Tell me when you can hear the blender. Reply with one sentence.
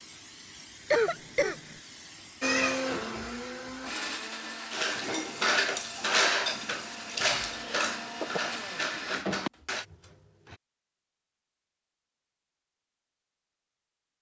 The blender can be heard from 2.4 to 10.6 s.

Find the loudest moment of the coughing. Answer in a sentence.
The volume of the coughing peaks at 1 second.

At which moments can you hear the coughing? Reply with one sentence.
You can hear the coughing from 0.9 to 1.8 s and from 7.3 to 8.4 s.